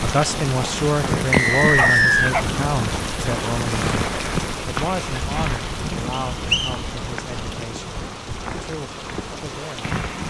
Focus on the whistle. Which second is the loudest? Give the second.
2 s.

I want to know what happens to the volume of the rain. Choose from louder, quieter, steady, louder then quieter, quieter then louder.
quieter.